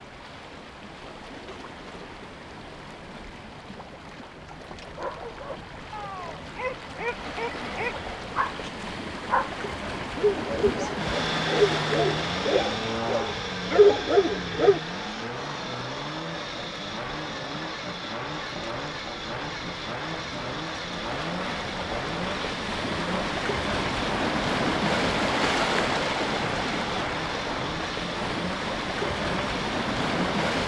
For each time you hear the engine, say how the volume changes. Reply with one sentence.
You can hear the engine from 10.9 to 30.5 s, at a steady volume.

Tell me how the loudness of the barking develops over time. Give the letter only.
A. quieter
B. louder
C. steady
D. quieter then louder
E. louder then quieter
B.